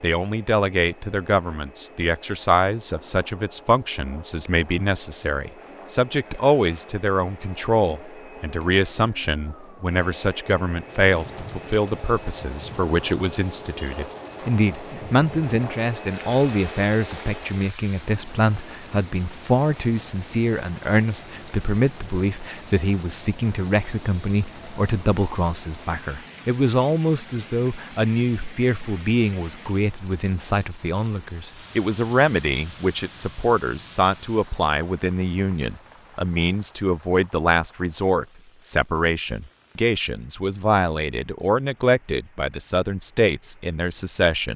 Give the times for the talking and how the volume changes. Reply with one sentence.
The talking can be heard from 0.0 to 44.5 s, at a steady volume.